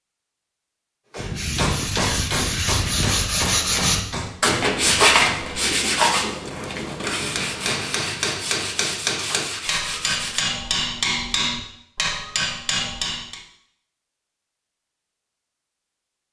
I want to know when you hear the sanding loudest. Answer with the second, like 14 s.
5 s.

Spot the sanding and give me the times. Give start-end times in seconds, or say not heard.
1.1-10.4.